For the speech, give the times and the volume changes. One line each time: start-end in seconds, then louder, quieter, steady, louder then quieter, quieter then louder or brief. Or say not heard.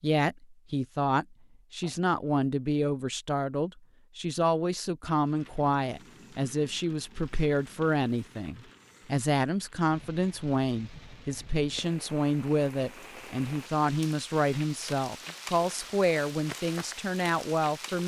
0.0-18.0 steady.